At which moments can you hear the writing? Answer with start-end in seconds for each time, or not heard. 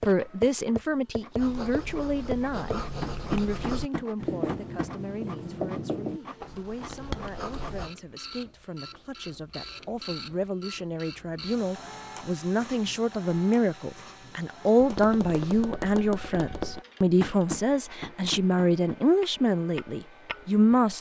1.4-7.9.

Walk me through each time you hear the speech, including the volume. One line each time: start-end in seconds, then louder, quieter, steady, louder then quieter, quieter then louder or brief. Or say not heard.
0.0-20.9 quieter then louder.